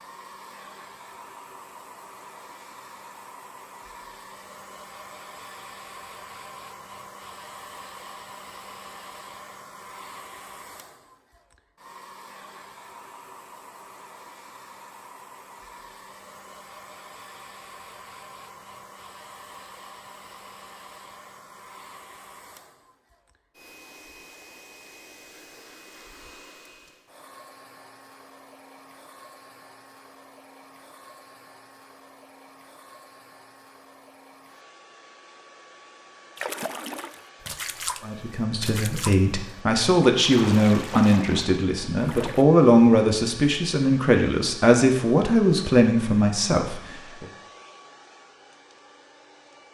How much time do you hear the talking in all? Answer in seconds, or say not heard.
9 s.